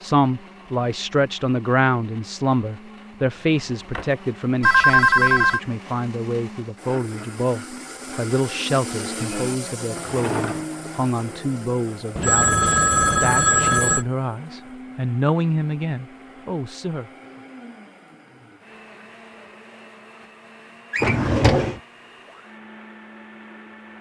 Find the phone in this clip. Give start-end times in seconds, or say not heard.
4.6-5.6, 12.2-14.1.